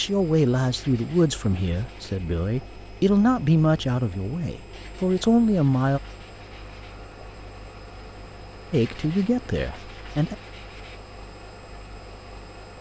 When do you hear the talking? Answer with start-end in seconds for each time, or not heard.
0.0-6.0, 8.7-10.3.